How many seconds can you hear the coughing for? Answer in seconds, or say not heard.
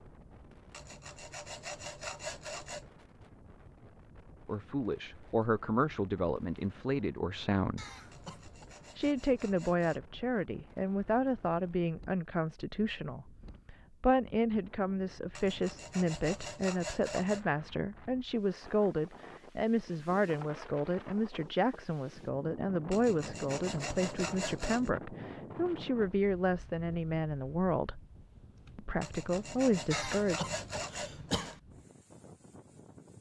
3 s.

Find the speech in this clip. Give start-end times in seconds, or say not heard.
4.5-7.8, 8.9-28.0, 28.8-30.4.